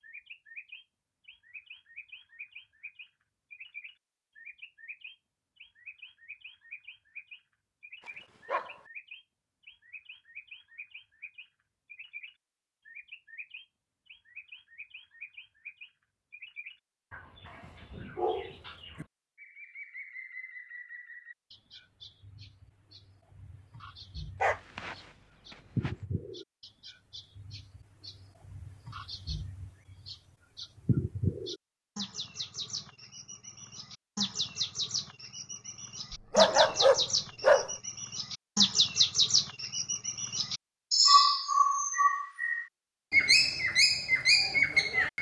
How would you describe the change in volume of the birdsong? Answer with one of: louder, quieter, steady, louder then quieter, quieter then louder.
louder.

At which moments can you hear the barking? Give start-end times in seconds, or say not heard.
8.1-8.8, 17.4-19.1, 24.4-25.9, 36.1-37.7.